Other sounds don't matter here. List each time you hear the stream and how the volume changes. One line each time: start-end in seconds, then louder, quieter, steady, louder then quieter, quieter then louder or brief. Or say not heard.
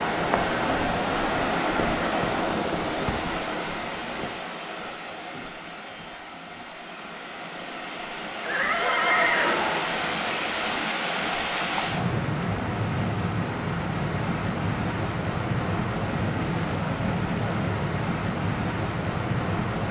0.0-19.8 quieter then louder.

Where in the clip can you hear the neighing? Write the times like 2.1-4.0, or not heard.
8.4-9.9.